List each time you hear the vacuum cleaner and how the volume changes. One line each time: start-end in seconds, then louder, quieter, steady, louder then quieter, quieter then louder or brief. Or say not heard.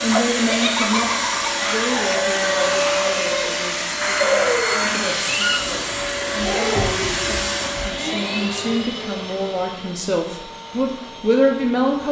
0.0-12.0 quieter.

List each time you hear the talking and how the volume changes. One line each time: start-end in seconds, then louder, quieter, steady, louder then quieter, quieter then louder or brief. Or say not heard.
0.0-12.0 quieter then louder.